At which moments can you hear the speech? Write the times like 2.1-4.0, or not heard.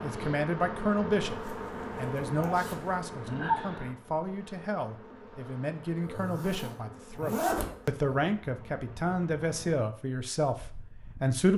0.0-11.5.